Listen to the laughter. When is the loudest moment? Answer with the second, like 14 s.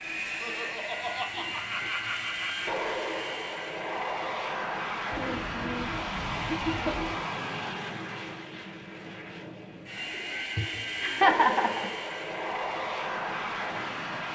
11 s.